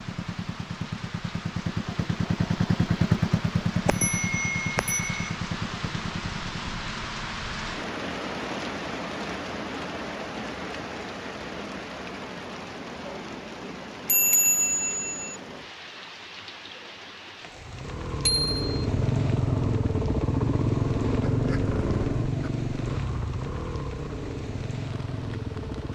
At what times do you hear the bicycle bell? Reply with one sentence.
You can hear the bicycle bell from 3.9 to 5.3 s, from 14.1 to 15.4 s and from 18.2 to 18.7 s.